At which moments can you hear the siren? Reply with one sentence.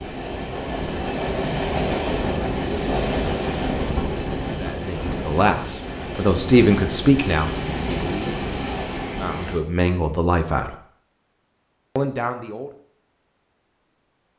The siren can't be heard in this clip.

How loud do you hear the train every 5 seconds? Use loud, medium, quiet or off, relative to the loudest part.
loud, loud, off.